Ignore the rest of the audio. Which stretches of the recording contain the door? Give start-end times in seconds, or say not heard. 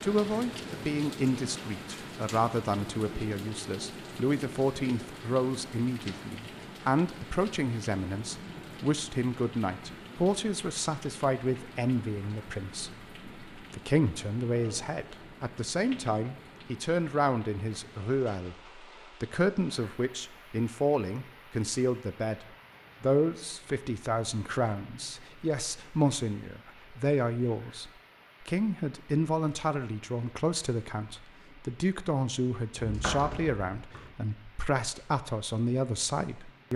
32.8-34.1.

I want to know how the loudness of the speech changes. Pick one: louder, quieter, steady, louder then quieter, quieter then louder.
steady.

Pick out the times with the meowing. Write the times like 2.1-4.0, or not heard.
not heard.